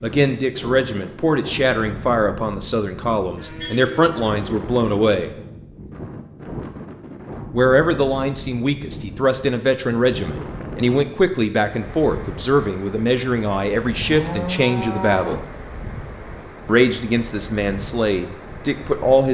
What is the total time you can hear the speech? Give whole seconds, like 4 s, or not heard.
16 s.